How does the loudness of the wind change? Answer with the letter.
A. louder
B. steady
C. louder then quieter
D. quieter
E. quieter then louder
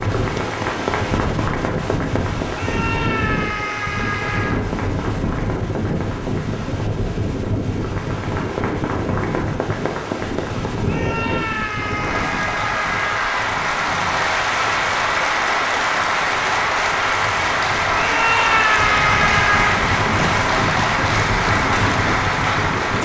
E.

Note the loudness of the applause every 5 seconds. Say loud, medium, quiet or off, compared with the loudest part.
medium, medium, loud, loud, loud.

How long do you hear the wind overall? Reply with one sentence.
The wind can be heard for 23 seconds in total.